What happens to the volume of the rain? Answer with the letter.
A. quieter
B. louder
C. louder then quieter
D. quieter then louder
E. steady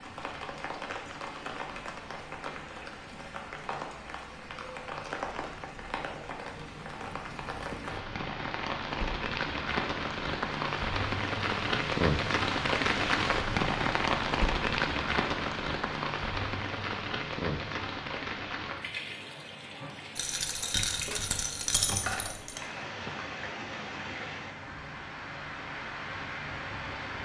C.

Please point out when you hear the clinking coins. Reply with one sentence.
The clinking coins can be heard from 20.1 to 22.6 s.